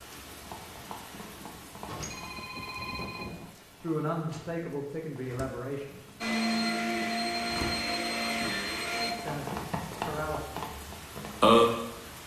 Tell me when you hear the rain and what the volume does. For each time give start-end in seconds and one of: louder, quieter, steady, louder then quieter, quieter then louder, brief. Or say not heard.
0.0-12.2 quieter then louder.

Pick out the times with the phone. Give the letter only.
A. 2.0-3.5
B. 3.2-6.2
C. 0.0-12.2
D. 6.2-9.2
A.